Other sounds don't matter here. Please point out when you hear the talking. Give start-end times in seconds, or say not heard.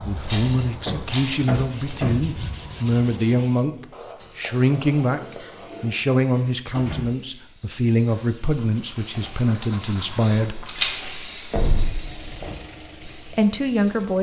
0.0-10.7, 13.2-14.1.